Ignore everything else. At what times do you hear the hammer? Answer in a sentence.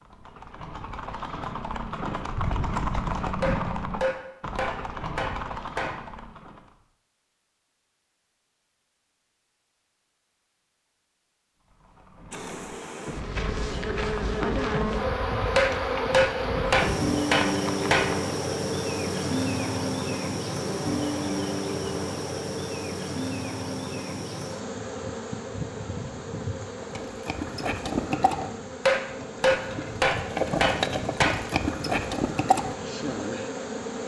You can hear the hammer from 3.4 to 6.0 s, from 15.6 to 18.1 s and from 28.9 to 31.4 s.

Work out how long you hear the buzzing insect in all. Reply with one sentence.
You can hear the buzzing insect for 22 seconds altogether.